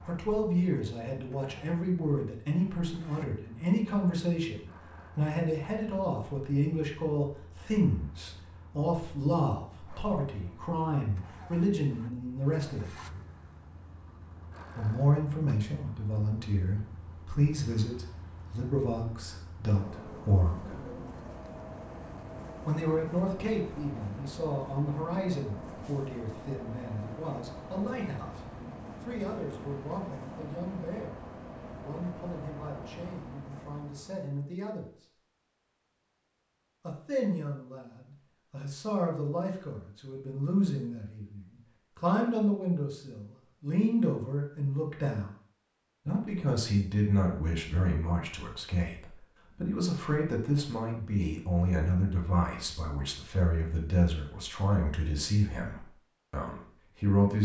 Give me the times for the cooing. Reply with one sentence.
The cooing can't be heard in this clip.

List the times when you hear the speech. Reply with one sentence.
You can hear the speech from 0.1 to 12.9 s, from 14.8 to 20.9 s, from 22.6 to 35.0 s, from 36.9 to 45.3 s and from 46.0 to 57.4 s.